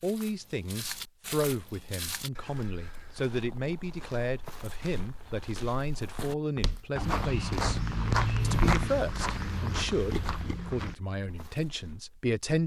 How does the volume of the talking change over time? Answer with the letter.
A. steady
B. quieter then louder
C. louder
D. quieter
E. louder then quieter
A.